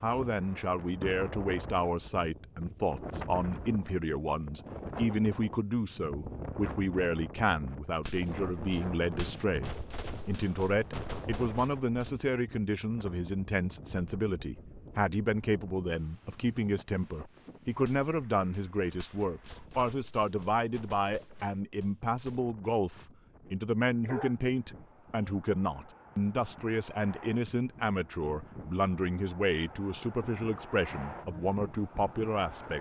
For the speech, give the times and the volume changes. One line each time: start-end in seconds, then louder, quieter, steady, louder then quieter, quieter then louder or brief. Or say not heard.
0.0-32.7 steady.